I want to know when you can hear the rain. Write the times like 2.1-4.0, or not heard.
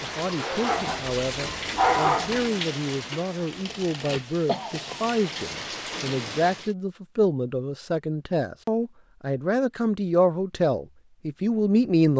0.0-6.8.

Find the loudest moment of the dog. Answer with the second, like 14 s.
2 s.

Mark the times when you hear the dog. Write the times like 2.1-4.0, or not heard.
0.2-2.5.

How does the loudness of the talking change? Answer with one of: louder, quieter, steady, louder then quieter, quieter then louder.
louder.